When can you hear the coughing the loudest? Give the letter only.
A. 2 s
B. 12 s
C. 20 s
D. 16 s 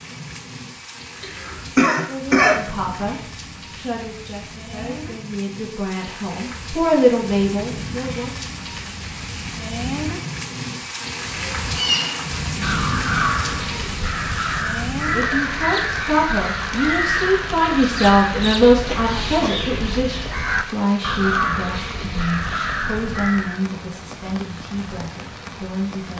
A.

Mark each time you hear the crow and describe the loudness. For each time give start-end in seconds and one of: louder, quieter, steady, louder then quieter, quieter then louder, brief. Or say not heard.
11.6-23.6 steady.